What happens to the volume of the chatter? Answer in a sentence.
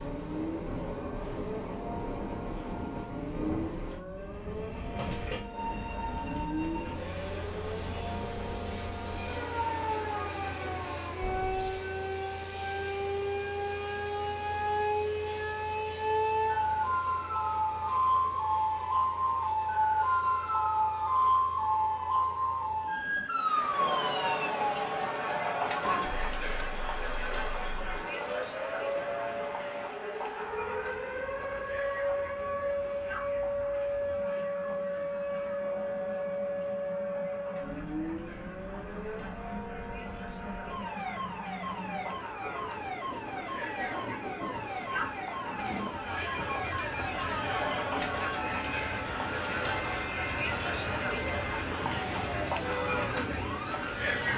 The loudness of the chatter goes down, then up.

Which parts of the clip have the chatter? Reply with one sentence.
The chatter can be heard from 23.3 to 54.3 s.